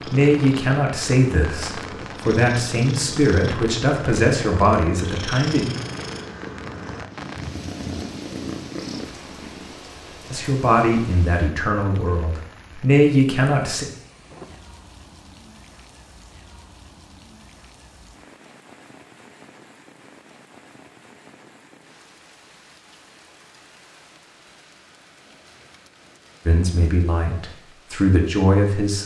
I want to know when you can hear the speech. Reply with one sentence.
You can hear the speech from 0.0 to 5.7 s, from 10.3 to 13.8 s and from 26.4 to 29.0 s.